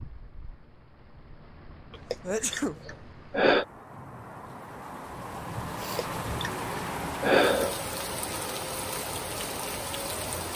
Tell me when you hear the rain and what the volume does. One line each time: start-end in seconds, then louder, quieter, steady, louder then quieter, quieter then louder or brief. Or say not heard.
0.0-10.5 louder.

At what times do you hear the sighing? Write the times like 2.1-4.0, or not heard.
2.1-3.6, 5.8-7.8.